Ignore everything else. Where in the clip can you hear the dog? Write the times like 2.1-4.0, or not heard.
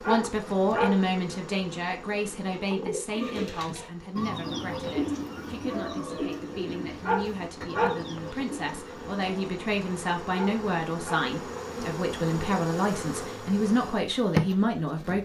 0.0-1.2, 7.0-8.2, 10.3-11.3.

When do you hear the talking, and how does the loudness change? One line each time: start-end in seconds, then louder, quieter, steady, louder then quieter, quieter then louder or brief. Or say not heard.
0.0-15.2 quieter then louder.